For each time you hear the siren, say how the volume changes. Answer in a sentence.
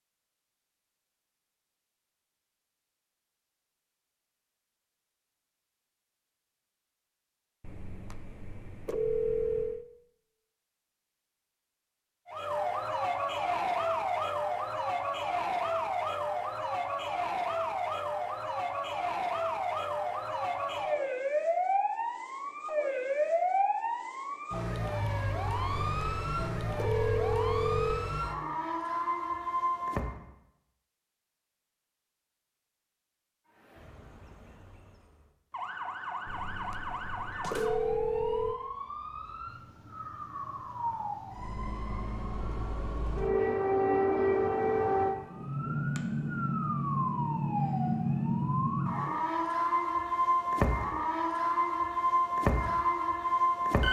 The siren can be heard from 12.2 to 30.1 s, at a steady volume; and from 33.5 to 53.8 s, getting louder.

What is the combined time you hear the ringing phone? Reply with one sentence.
The ringing phone can be heard for 7 seconds in total.